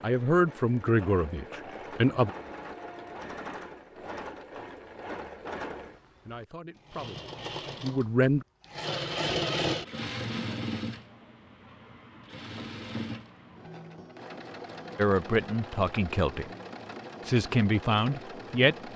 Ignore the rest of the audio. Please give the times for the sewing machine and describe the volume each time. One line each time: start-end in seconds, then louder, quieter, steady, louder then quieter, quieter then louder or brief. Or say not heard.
0.0-18.9 louder then quieter.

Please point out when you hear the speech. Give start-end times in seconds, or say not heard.
0.0-2.3, 6.2-8.4, 14.9-16.4, 17.2-18.8.